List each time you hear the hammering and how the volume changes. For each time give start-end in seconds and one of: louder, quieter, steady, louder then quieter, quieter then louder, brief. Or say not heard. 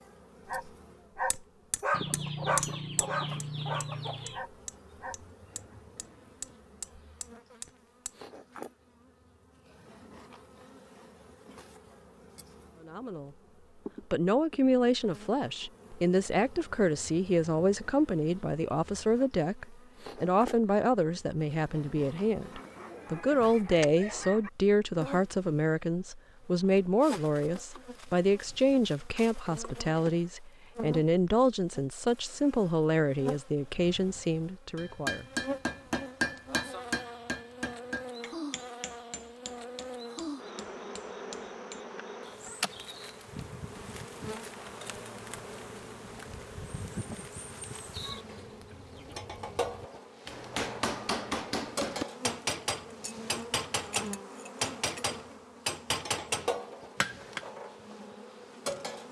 1.3-8.2 quieter
34.8-42.0 quieter
50.2-57.4 steady.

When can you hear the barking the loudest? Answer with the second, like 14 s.
2 s.